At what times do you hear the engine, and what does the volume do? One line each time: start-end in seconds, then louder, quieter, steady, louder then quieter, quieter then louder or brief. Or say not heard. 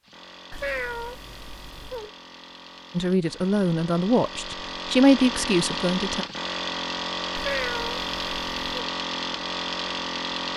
0.0-10.5 louder.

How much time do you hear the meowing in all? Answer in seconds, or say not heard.
3 s.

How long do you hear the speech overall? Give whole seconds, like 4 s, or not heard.
3 s.